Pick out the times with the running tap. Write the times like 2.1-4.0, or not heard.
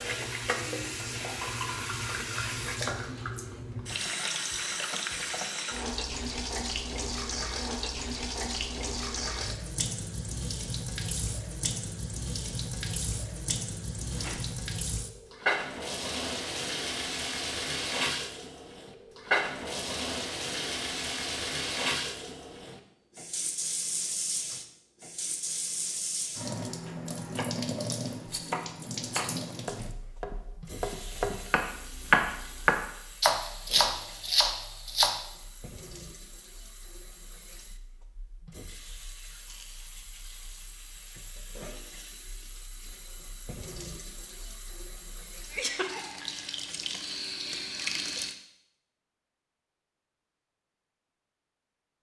0.0-48.4.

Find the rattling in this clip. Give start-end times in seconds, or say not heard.
14.1-14.6, 28.2-29.4, 39.4-39.9.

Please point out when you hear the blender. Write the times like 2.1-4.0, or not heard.
not heard.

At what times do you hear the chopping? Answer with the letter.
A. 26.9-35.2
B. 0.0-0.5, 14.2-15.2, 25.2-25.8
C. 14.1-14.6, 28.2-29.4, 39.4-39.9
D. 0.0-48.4
A.